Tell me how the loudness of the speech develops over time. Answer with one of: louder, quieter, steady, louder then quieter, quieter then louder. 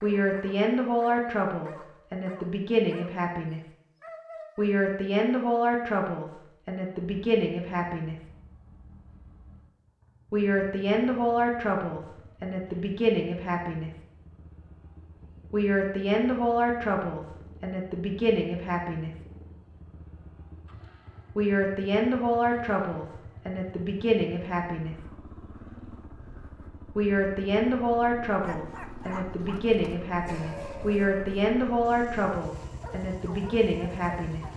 steady.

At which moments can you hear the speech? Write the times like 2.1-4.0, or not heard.
0.0-3.6, 4.5-8.2, 10.3-13.9, 15.5-19.1, 21.4-24.9, 26.9-34.5.